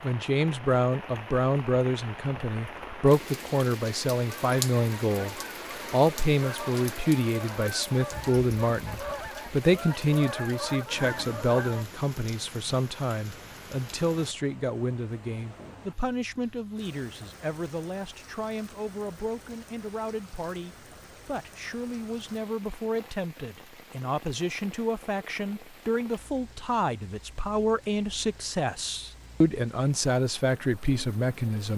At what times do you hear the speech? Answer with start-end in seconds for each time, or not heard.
0.0-31.7.